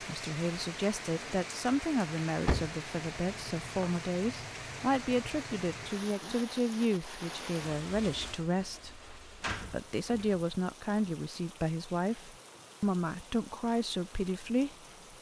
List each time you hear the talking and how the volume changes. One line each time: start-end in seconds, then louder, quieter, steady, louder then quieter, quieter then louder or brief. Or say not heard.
0.0-14.7 steady.